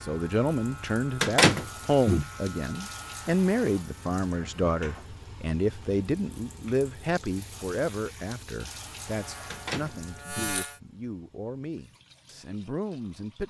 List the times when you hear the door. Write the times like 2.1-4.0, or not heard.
1.2-2.2, 9.5-10.6.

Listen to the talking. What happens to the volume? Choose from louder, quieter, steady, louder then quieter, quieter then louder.
quieter.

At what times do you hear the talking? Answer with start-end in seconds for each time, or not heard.
0.0-13.4.